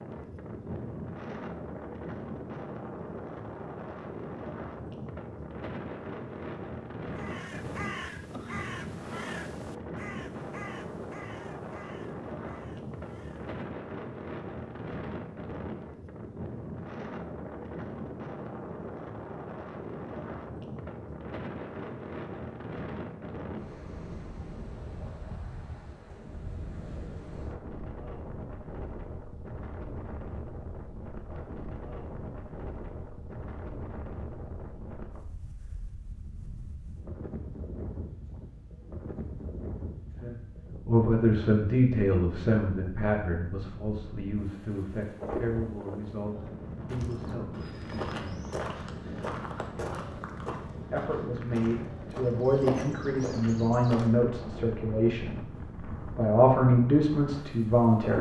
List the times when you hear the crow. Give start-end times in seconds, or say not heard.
7.2-13.6.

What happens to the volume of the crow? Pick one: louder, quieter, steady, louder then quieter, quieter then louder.
quieter.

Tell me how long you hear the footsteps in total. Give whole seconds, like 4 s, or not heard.
7 s.